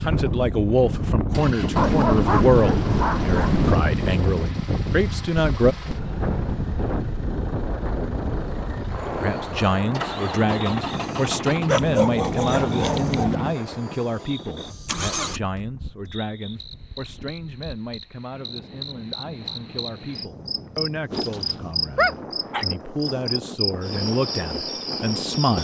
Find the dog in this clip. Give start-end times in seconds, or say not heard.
1.8-3.8, 11.7-13.3, 21.1-22.6.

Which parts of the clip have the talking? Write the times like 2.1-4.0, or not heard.
0.0-5.8, 9.2-25.6.